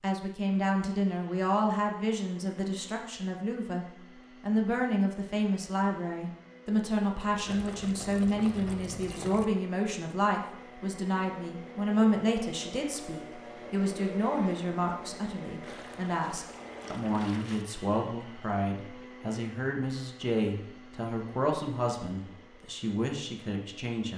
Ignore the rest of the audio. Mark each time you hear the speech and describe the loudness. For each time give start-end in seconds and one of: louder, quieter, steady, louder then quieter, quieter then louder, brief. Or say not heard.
0.0-24.1 steady.